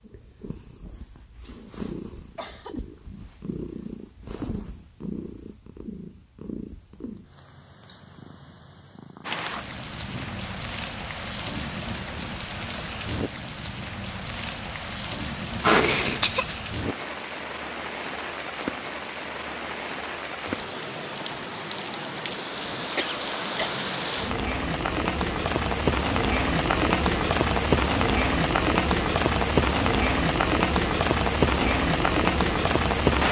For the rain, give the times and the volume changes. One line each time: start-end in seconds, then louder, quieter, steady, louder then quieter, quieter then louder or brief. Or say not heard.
9.2-33.2 louder.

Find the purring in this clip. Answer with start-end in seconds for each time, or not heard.
0.0-14.1.